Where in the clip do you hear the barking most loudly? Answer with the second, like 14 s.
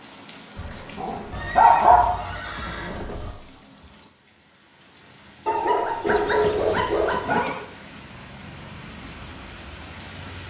2 s.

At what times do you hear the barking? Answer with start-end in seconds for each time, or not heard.
0.6-2.0, 5.5-7.5.